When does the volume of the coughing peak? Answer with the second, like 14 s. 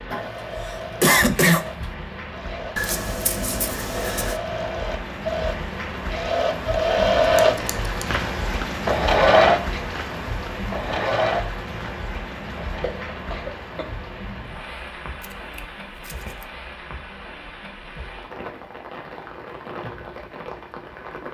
1 s.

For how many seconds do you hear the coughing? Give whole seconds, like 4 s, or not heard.
3 s.